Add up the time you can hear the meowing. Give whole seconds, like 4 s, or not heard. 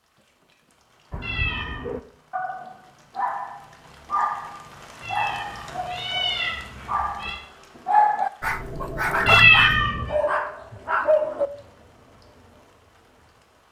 4 s.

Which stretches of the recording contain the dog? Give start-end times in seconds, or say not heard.
1.1-11.5.